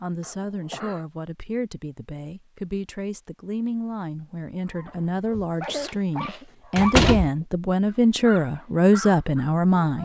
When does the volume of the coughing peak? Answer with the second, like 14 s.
6 s.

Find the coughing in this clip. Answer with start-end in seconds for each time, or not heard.
0.2-1.1, 5.7-6.5.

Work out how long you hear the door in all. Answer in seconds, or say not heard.
2 s.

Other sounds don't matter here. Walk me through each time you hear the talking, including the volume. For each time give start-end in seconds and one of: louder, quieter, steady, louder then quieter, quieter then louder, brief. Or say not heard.
0.0-9.9 louder.